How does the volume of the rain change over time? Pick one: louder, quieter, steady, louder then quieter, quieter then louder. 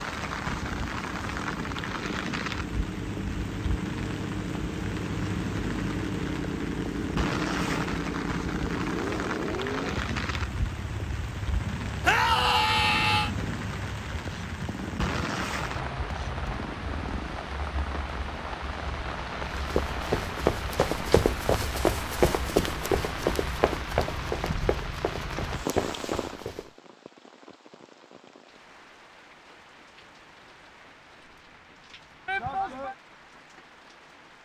quieter.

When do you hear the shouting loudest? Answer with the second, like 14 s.
12 s.